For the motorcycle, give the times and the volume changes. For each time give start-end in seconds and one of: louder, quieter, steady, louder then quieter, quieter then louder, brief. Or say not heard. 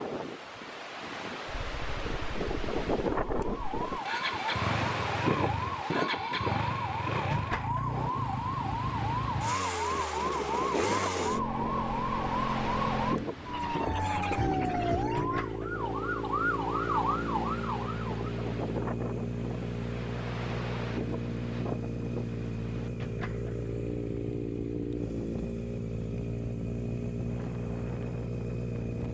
1.4-29.1 steady.